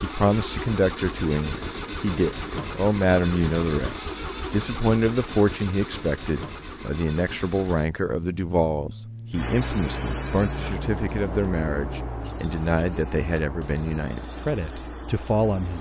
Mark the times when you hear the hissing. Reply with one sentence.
The hissing can be heard from 9.3 to 15.7 s.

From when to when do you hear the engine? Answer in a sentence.
You can hear the engine from 0.0 to 12.3 s.